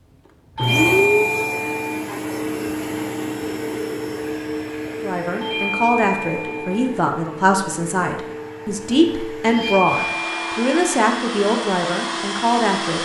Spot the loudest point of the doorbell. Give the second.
1 s.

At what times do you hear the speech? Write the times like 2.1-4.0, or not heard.
5.0-13.0.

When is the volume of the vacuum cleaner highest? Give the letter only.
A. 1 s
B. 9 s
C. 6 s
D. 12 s
A.